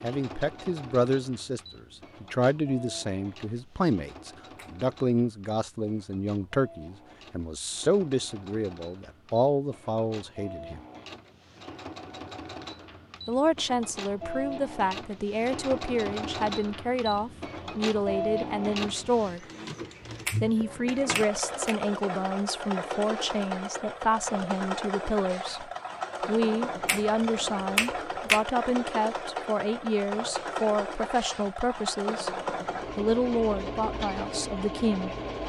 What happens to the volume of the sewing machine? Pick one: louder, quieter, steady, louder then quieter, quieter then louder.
louder.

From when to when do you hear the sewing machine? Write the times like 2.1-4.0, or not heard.
0.0-35.4.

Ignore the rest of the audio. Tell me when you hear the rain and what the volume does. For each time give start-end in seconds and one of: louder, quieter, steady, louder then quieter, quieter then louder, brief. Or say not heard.
not heard.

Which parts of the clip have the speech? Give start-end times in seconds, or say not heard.
0.0-10.8, 13.2-19.4, 20.4-32.4, 33.0-35.1.